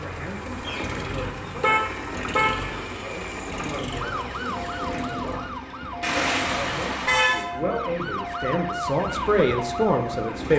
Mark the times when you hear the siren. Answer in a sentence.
You can hear the siren from 3.9 to 10.5 s.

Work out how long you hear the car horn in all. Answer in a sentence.
The car horn can be heard for 4 seconds in total.